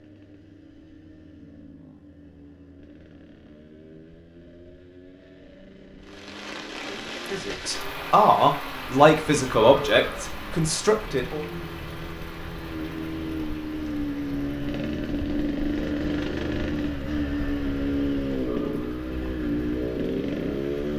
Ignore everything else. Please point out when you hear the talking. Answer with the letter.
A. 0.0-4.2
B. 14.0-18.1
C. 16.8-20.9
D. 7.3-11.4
D.